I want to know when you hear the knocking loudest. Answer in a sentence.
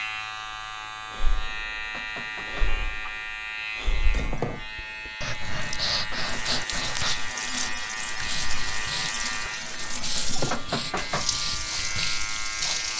The loudest moment of the knocking is at 11 seconds.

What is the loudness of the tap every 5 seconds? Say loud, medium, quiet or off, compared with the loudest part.
off, loud, loud.